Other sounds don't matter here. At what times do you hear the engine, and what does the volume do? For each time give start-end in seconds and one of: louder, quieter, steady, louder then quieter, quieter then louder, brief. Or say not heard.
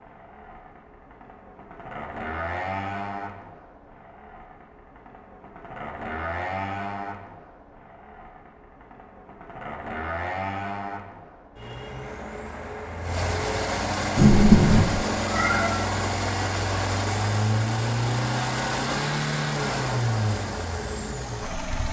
0.0-21.8 louder.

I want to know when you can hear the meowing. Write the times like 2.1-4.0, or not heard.
14.2-15.7.